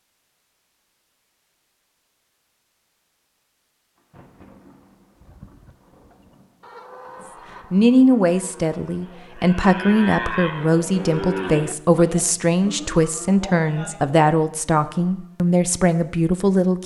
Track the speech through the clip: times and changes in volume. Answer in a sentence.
The speech can be heard from 7.7 to 16.8 s, at a steady volume.